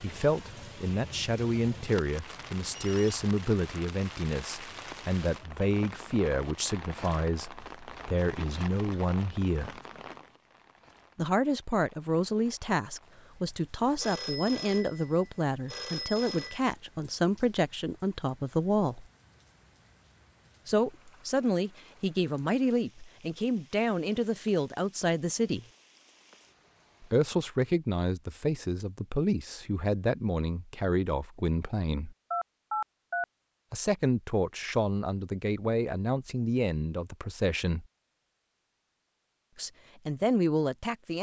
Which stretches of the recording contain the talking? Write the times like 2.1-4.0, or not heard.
0.0-9.8, 11.2-19.1, 20.6-25.6, 27.0-32.1, 33.7-37.9, 39.5-41.1.